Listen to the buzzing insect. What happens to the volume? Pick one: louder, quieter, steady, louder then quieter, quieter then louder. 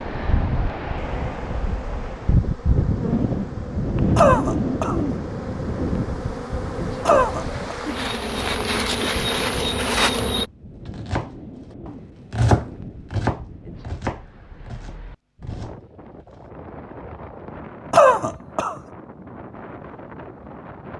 louder.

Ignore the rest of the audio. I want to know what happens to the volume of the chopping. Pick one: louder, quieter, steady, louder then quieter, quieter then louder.
louder then quieter.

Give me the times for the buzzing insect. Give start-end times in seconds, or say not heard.
0.0-10.4.